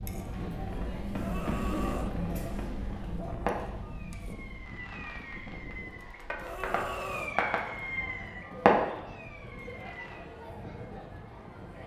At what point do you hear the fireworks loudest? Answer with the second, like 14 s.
9 s.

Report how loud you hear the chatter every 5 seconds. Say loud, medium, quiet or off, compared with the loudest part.
loud, medium, medium.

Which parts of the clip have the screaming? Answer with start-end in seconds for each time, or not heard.
1.1-2.1, 6.3-7.4.